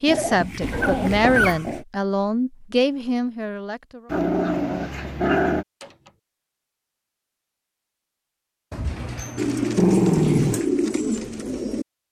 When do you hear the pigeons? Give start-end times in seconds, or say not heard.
9.3-11.8.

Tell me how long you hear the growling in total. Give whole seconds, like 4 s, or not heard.
4 s.